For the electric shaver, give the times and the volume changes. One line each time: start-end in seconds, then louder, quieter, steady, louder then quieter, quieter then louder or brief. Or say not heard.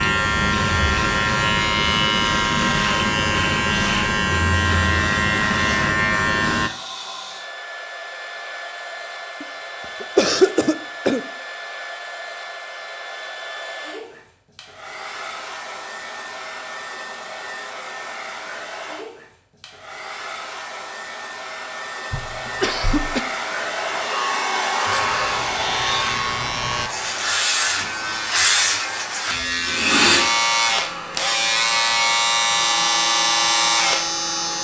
0.0-6.7 steady
24.9-34.5 louder.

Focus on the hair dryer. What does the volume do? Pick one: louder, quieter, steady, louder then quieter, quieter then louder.
louder then quieter.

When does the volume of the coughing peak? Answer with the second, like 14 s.
10 s.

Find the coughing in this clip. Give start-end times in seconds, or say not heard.
9.4-11.2, 22.1-23.2.